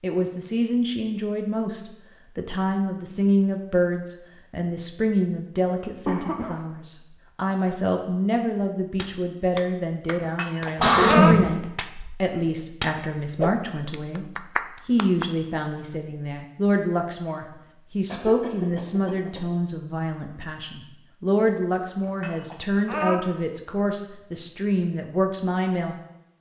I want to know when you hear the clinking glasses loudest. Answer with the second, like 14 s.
11 s.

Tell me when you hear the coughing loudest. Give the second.
11 s.